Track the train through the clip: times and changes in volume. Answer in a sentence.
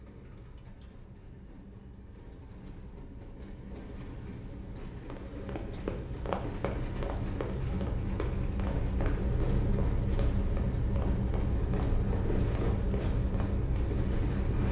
The train can be heard from 0.0 to 14.6 s, getting louder.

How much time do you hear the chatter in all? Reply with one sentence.
The chatter can't be heard in this clip.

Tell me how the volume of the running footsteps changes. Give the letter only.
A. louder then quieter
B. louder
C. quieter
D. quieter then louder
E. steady
C.